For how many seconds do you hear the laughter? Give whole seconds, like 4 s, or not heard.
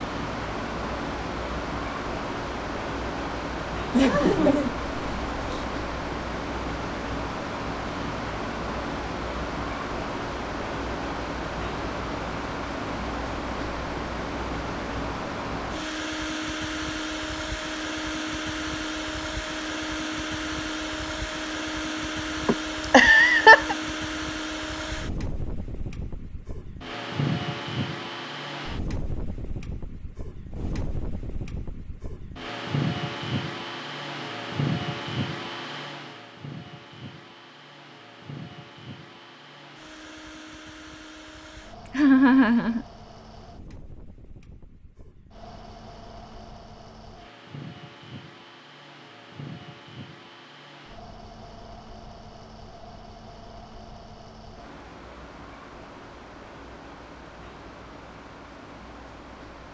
4 s.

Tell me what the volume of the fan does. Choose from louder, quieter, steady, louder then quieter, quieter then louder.
quieter.